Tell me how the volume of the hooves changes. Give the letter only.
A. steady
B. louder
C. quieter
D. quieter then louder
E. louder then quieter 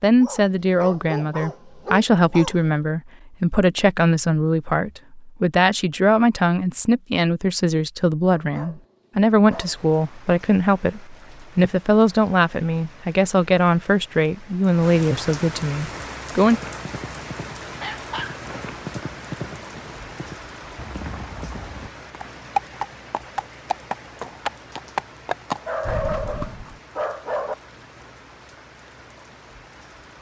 B.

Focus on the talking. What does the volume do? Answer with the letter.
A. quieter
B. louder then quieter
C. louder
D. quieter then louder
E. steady
E.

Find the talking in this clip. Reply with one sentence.
You can hear the talking from 0.0 to 16.6 s.